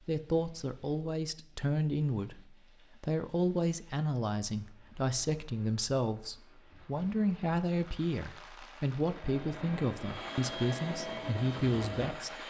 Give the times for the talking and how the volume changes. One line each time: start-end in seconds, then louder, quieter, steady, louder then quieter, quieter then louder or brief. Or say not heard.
0.1-12.4 steady.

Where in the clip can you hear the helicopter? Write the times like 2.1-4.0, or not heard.
9.1-12.4.